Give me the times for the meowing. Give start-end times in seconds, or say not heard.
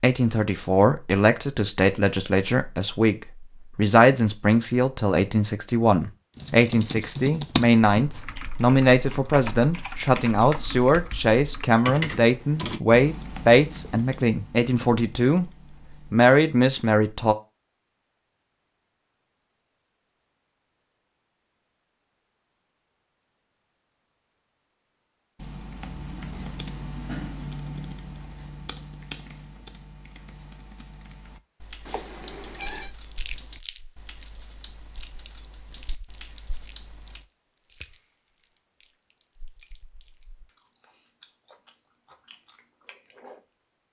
31.9-32.9.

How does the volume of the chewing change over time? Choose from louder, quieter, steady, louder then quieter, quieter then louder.
quieter then louder.